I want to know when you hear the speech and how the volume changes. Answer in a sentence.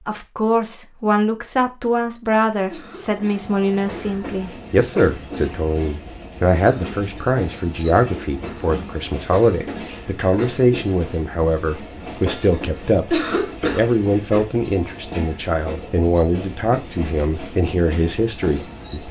The speech can be heard from 0.1 to 19.0 s, at a steady volume.